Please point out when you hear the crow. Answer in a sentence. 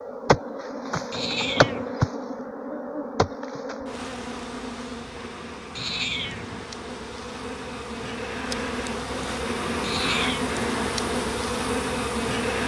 The crow can't be heard in this clip.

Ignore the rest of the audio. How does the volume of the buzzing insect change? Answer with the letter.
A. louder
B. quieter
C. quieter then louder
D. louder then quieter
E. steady
C.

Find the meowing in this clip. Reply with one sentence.
You can hear the meowing from 1.1 to 1.9 s, from 5.8 to 6.7 s and from 9.8 to 10.6 s.